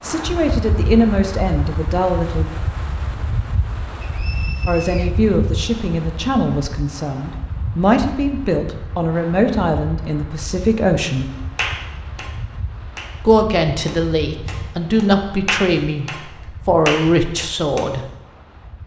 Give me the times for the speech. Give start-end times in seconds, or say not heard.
0.0-2.5, 4.7-11.3, 13.2-18.1.